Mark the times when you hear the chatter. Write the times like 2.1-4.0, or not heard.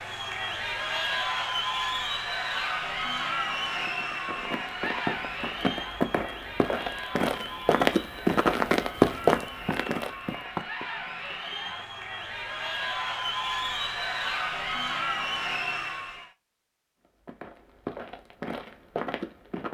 0.0-16.3.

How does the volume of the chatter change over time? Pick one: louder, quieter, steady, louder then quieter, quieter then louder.
quieter then louder.